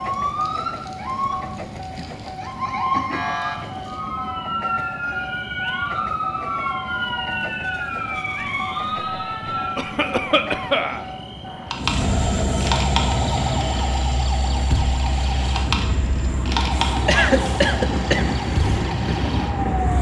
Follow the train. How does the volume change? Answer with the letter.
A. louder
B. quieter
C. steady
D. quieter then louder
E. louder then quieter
A.